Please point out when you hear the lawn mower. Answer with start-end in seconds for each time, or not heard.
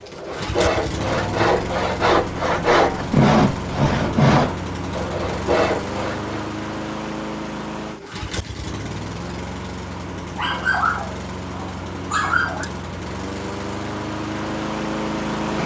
0.0-15.6.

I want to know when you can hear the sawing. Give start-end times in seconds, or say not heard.
0.0-6.5.